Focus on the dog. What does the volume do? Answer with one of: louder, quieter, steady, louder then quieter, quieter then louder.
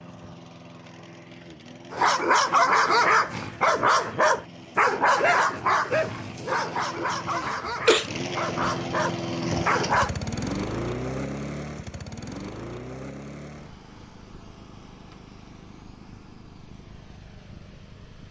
quieter.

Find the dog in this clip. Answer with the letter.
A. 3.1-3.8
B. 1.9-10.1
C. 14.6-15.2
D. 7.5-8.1
B.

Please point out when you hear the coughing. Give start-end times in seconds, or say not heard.
7.5-8.1.